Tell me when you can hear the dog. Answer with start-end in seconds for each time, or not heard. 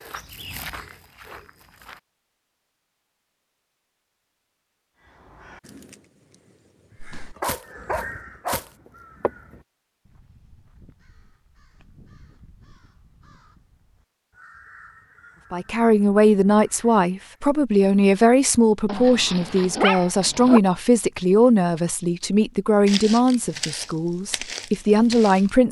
7.2-8.7, 18.9-20.6.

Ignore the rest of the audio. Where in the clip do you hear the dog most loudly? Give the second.
20 s.